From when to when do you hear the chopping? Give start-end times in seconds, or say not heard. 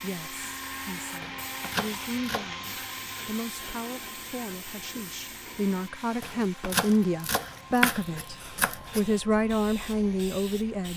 1.2-2.6, 6.2-9.0.